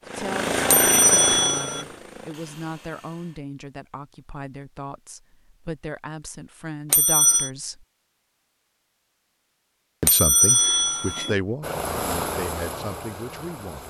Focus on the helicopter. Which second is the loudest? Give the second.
1 s.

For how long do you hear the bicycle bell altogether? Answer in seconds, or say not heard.
3 s.